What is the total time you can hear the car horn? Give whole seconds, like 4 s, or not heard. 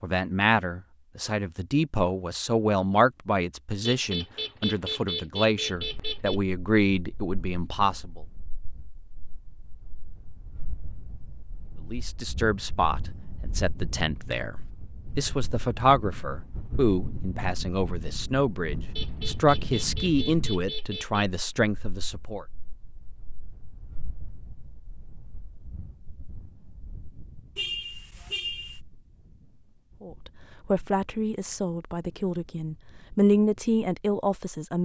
6 s.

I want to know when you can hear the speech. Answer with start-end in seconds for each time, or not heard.
0.0-8.2, 11.8-22.4, 30.0-34.7.